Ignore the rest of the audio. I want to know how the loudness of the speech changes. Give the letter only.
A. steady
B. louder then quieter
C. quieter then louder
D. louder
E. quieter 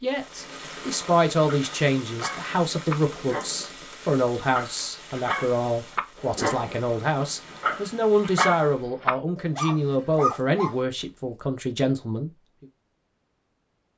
A.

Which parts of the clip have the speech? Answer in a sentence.
The speech can be heard from 0.0 to 12.3 s.